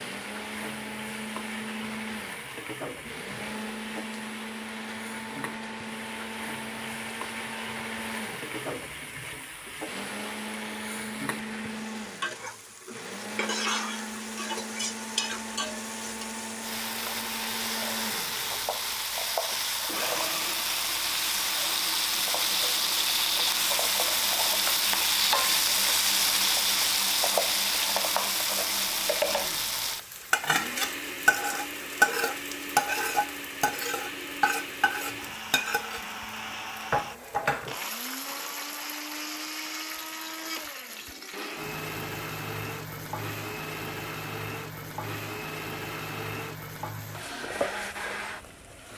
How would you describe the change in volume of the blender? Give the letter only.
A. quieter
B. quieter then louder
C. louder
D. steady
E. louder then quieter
D.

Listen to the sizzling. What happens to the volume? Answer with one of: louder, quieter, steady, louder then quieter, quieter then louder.
louder then quieter.